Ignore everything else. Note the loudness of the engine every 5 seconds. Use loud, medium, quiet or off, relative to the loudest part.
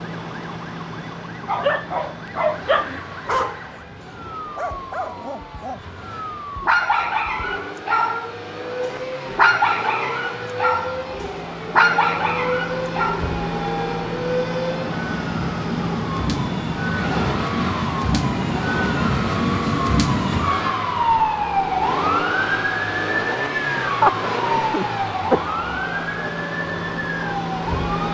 medium, medium, loud, loud, loud, loud.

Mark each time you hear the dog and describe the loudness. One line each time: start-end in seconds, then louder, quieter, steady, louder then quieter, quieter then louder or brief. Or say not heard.
1.4-13.3 quieter then louder.